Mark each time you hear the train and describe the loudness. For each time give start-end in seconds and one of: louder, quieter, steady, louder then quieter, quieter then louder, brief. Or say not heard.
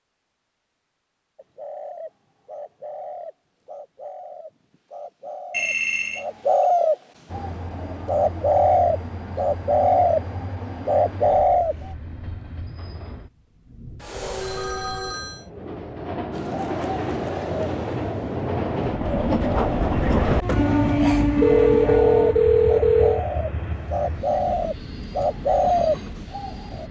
7.2-26.8 louder then quieter.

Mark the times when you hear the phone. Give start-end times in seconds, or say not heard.
5.5-6.2, 14.0-15.4, 21.4-23.2.